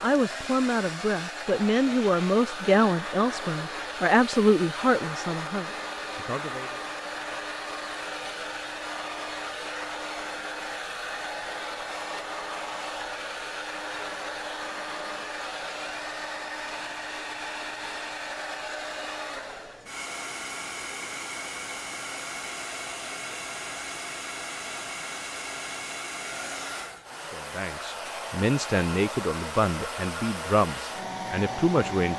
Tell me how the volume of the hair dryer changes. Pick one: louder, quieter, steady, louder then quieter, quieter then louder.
steady.